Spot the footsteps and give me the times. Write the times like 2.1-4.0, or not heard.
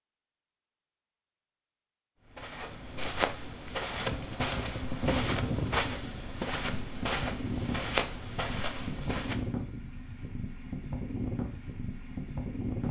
2.2-9.6.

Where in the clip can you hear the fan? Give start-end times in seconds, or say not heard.
3.9-12.8.